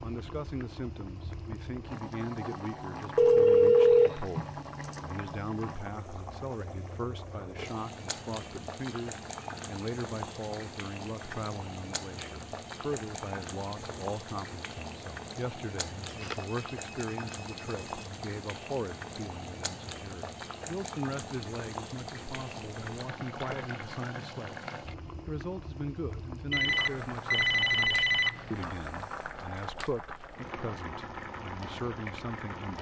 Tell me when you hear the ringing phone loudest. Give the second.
4 s.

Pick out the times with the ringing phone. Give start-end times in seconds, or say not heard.
3.1-5.0, 16.1-18.1, 26.5-28.6.